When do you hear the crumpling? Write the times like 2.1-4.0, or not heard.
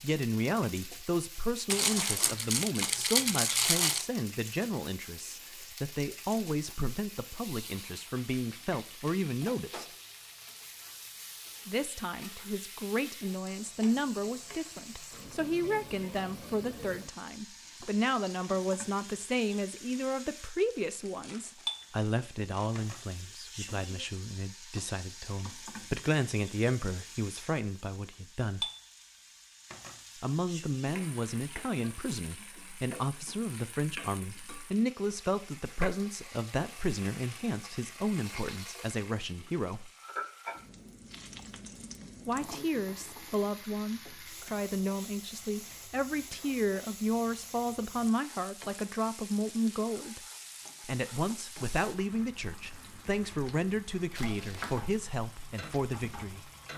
1.6-4.0, 20.6-22.8, 54.1-54.9.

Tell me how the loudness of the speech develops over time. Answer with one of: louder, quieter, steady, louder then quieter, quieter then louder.
steady.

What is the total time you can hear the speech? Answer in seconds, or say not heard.
50 s.